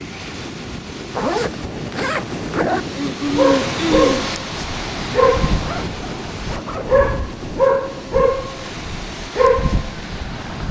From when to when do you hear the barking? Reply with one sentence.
You can hear the barking from 3.2 to 10.6 s.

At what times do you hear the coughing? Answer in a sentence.
You can hear the coughing from 2.8 to 4.3 s.